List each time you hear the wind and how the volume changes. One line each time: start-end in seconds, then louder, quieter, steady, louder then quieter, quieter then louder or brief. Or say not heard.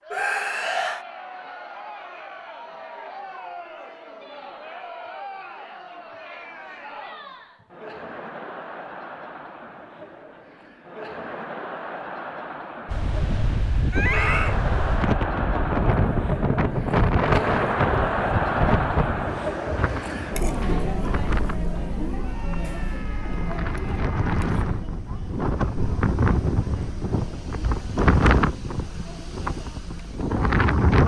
12.8-31.0 quieter then louder.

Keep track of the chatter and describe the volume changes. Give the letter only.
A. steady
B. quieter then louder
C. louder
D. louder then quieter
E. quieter
D.